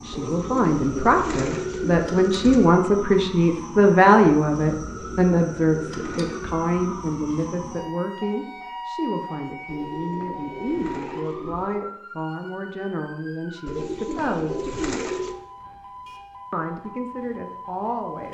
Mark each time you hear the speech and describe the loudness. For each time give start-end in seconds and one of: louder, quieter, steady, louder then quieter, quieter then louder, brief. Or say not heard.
0.0-14.7 quieter
16.5-18.2 brief.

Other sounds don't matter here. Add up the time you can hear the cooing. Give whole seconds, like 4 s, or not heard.
8 s.